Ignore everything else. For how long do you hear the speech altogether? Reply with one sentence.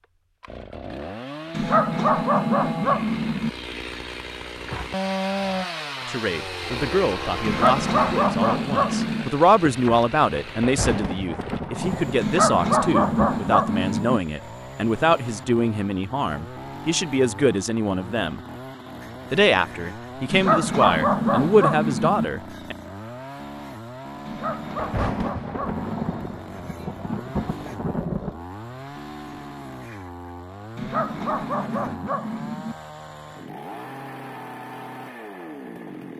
You can hear the speech for 16 seconds altogether.